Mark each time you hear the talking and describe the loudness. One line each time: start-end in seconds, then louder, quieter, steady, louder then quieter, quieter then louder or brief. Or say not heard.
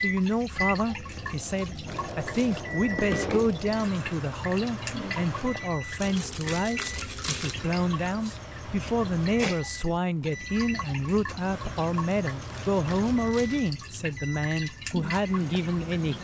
0.0-16.1 steady.